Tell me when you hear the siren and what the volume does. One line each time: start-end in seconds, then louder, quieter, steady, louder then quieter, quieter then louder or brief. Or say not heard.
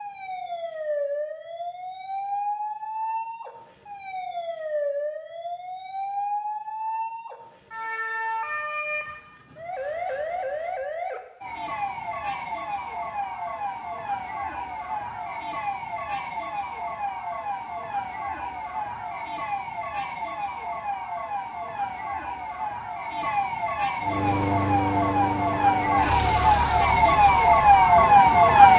0.0-28.7 louder.